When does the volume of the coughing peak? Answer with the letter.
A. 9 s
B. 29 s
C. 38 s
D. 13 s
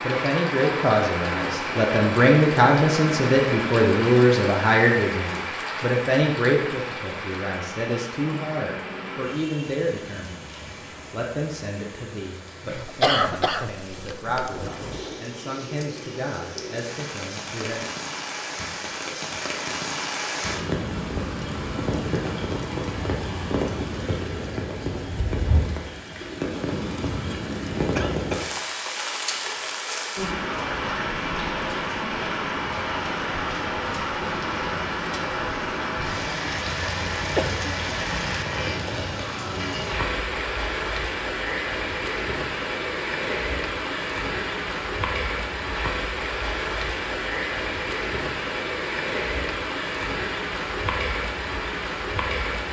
D.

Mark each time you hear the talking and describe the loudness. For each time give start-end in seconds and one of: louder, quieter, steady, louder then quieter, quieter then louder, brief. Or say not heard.
0.0-17.9 quieter.